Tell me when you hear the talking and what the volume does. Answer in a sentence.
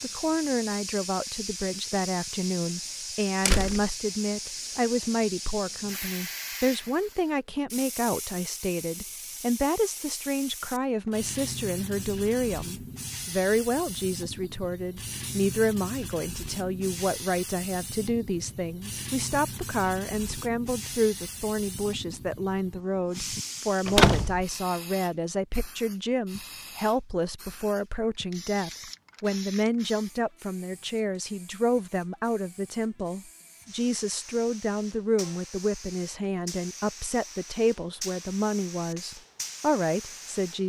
The talking can be heard from 0.0 to 40.6 s, at a steady volume.